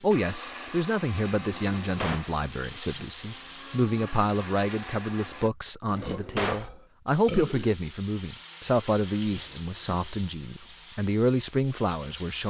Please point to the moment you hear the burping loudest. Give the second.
7 s.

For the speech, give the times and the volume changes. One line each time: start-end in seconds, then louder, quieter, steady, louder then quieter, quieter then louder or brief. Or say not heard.
0.0-12.4 steady.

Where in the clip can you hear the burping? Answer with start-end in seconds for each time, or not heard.
6.0-7.8.